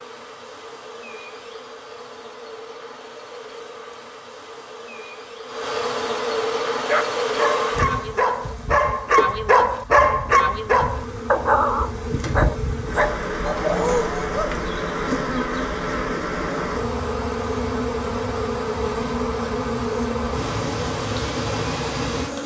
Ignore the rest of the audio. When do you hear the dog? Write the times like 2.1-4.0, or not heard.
6.8-14.5.